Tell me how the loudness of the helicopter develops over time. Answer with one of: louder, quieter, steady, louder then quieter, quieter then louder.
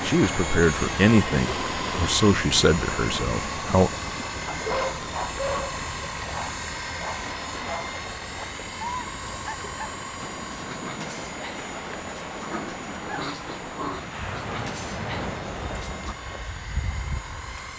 quieter.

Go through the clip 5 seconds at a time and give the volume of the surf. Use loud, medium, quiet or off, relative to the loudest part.
loud, medium, loud, loud.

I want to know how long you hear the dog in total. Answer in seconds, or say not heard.
12 s.